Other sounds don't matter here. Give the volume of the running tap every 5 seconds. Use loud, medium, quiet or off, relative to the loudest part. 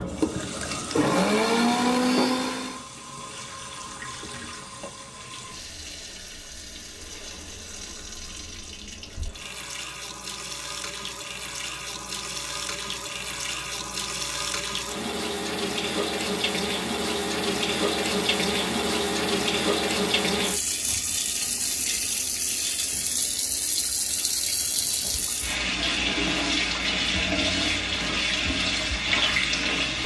medium, quiet, medium, loud, loud, loud.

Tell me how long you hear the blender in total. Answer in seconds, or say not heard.
3 s.